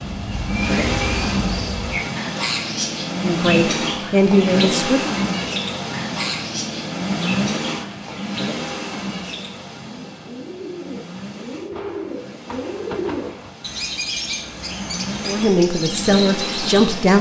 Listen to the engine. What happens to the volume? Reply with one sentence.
The volume of the engine goes down, then up.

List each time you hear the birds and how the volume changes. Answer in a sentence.
You can hear the birds from 0.0 to 17.1 s, getting quieter then louder.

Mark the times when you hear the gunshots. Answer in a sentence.
You can hear the gunshots from 11.7 to 13.5 s.